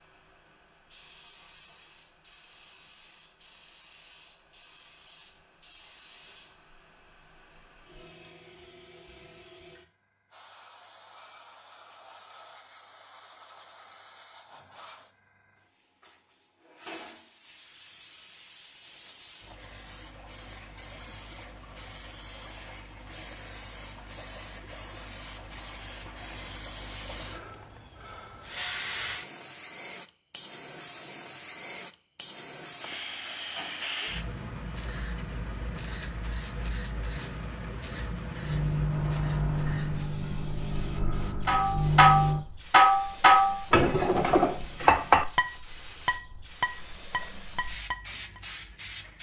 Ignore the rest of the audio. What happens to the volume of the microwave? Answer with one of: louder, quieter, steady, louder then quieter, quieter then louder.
quieter then louder.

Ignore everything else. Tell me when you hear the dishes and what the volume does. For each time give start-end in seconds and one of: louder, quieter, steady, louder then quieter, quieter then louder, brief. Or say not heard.
41.5-48.4 quieter.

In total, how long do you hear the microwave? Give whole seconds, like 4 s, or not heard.
4 s.